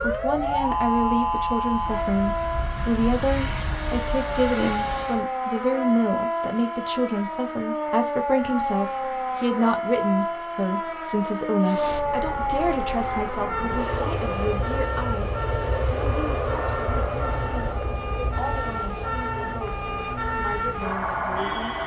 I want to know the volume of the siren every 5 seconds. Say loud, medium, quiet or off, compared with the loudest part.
loud, loud, loud, medium, loud.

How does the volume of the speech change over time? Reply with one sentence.
The volume of the speech goes down.